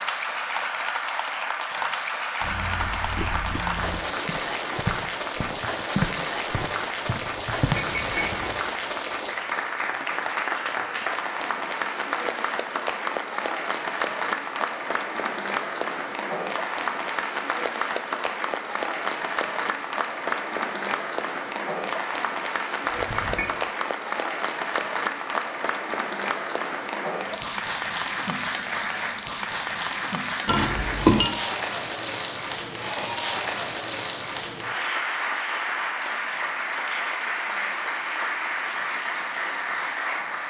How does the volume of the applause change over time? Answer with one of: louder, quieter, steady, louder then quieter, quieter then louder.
steady.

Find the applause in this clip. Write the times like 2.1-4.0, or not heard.
0.0-40.4.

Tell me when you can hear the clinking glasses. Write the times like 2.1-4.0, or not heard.
7.3-8.4, 22.8-23.4, 30.4-31.4.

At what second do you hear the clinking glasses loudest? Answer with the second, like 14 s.
31 s.